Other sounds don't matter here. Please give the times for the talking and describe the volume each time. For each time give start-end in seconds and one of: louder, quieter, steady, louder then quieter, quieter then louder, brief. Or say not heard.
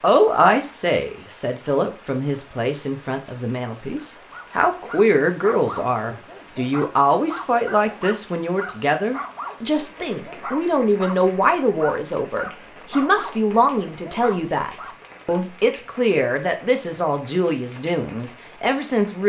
0.0-19.2 steady.